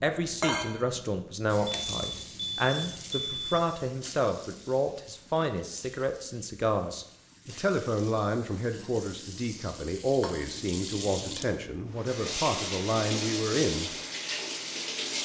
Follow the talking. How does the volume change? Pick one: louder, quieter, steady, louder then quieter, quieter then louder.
steady.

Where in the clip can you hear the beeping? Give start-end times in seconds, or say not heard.
1.6-3.6.